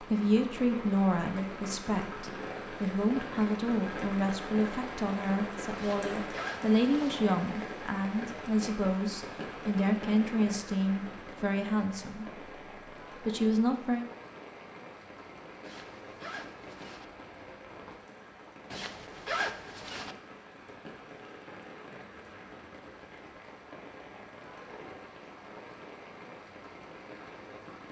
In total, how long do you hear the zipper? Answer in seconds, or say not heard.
4 s.